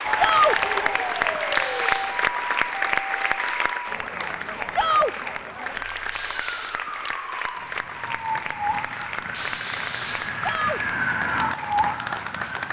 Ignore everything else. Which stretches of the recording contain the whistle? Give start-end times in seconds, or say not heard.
not heard.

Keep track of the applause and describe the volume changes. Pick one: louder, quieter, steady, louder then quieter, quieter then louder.
quieter.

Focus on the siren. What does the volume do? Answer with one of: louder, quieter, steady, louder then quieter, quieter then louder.
quieter then louder.